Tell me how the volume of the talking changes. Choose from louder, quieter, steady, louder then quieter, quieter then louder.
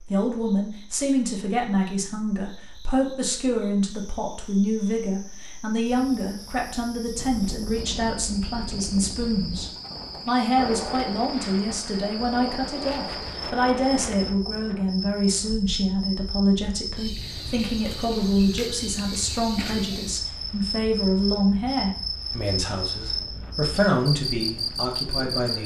steady.